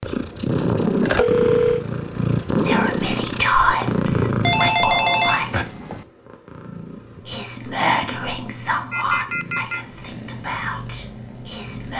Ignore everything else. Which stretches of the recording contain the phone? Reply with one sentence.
The phone can be heard from 1.0 to 1.9 s, from 4.4 to 6.0 s and from 8.9 to 9.8 s.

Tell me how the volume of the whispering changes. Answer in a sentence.
The loudness of the whispering goes down.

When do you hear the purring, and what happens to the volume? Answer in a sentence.
You can hear the purring from 0.0 to 11.9 s, getting quieter.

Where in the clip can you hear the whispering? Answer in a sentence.
The whispering can be heard from 2.6 to 5.7 s and from 7.2 to 11.9 s.